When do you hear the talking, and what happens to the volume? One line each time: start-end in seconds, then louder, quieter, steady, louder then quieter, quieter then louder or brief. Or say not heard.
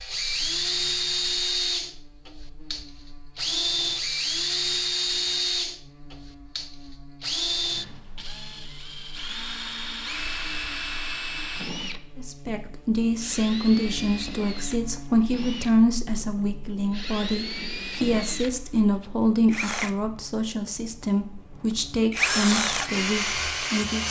12.2-24.0 steady.